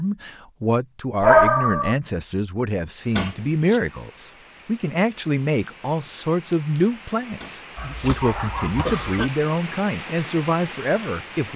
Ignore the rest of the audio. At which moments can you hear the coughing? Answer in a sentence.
You can hear the coughing from 3.1 to 3.8 s and from 7.4 to 9.3 s.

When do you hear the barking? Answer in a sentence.
The barking can be heard from 1.2 to 1.9 s and from 7.8 to 9.1 s.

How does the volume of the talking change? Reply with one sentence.
The volume of the talking stays about the same.